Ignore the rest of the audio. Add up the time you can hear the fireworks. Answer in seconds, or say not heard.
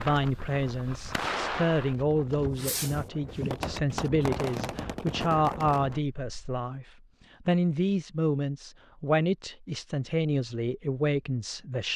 6 s.